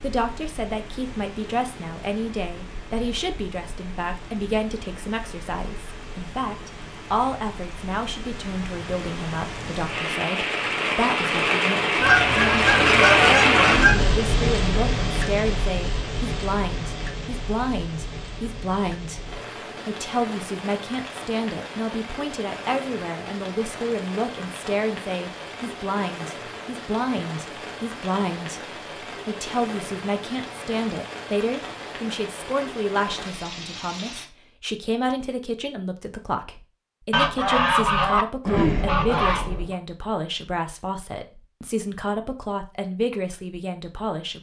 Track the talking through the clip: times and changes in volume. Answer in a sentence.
The talking can be heard from 0.0 to 44.3 s, at a steady volume.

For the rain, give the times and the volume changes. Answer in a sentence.
You can hear the rain from 0.0 to 34.2 s, getting louder then quieter.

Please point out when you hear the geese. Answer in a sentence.
You can hear the geese from 12.0 to 14.2 s and from 37.1 to 39.8 s.